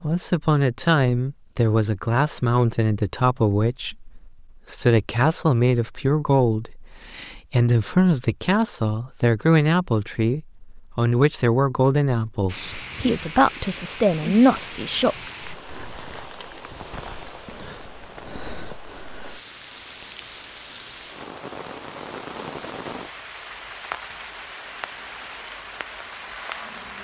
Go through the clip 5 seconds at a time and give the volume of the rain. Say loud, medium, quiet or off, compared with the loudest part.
off, off, loud, loud, loud, loud.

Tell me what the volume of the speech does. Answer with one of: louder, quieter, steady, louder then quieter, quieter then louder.
steady.